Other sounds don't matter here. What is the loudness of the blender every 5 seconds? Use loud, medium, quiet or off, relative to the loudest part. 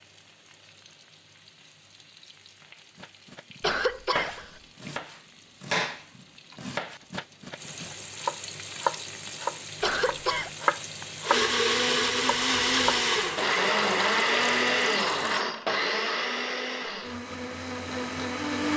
off, off, loud, medium.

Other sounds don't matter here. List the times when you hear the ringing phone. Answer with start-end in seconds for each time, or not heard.
not heard.